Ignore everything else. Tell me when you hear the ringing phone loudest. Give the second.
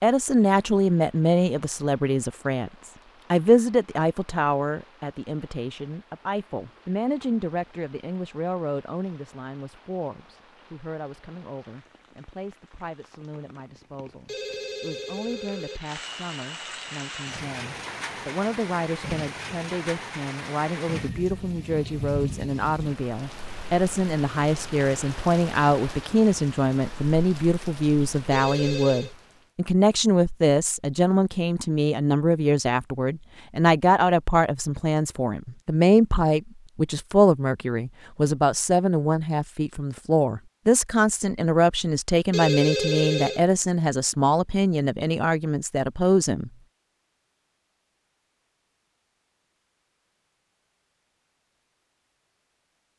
43 s.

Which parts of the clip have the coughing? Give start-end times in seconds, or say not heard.
not heard.